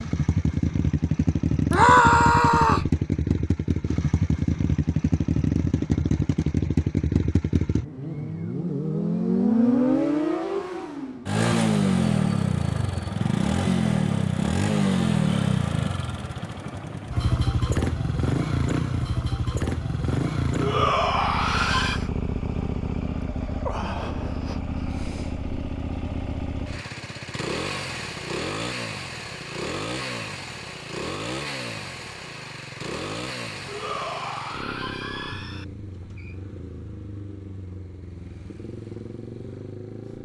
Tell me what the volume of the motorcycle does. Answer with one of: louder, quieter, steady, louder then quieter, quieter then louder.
quieter.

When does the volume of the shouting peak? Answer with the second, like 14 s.
2 s.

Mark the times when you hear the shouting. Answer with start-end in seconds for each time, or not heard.
1.7-2.9, 20.6-22.0, 33.6-35.6.